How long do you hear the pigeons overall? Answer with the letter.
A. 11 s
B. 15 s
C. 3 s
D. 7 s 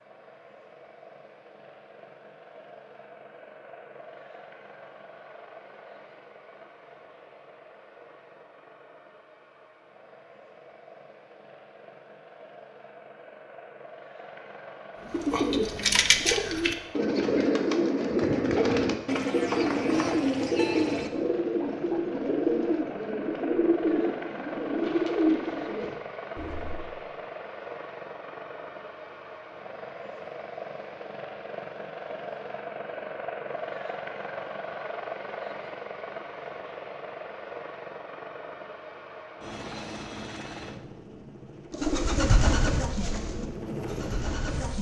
B.